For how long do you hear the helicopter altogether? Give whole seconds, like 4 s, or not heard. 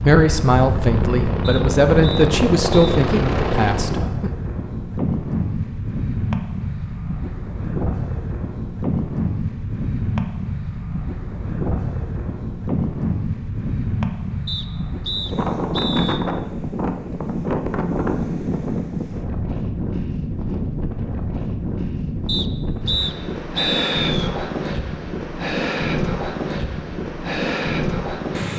4 s.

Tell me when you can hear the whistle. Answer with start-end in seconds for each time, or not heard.
1.4-2.8, 14.4-16.2, 22.2-24.3.